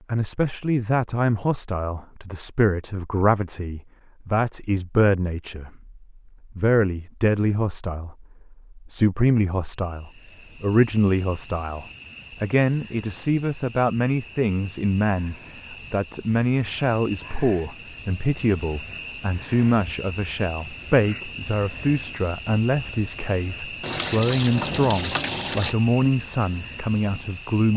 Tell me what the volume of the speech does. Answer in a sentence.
The loudness of the speech stays about the same.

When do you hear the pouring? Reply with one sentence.
The pouring can be heard from 23.8 to 25.8 s.